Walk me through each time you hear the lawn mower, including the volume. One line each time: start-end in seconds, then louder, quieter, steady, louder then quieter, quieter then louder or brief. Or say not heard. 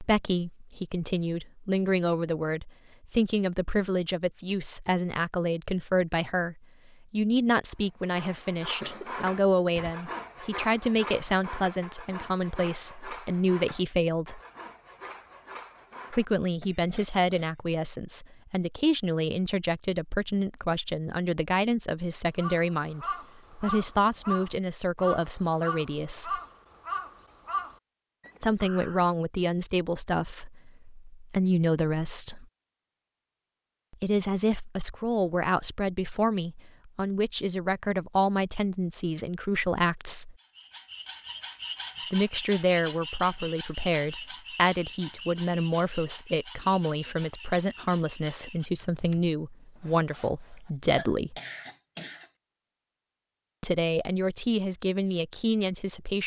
not heard.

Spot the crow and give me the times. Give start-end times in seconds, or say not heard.
22.4-29.0.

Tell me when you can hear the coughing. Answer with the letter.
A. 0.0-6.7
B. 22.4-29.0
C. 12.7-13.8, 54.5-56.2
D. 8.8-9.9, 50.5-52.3
D.